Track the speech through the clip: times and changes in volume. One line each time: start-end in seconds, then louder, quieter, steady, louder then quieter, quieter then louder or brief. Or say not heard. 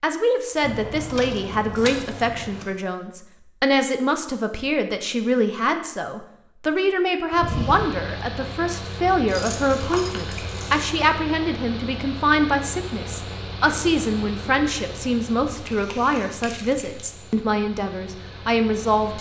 0.0-19.1 steady.